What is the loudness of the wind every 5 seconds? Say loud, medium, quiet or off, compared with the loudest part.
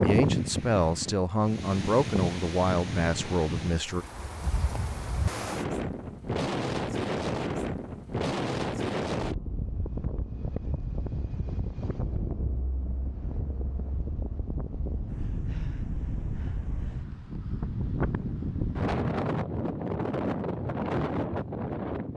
loud, loud, medium, loud, loud.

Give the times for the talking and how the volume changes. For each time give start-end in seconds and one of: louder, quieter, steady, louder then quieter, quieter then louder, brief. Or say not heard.
0.0-4.0 steady.